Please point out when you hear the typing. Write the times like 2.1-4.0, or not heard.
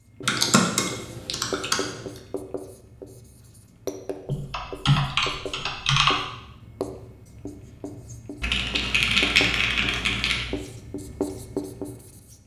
0.2-2.0, 4.2-6.2, 8.4-10.6.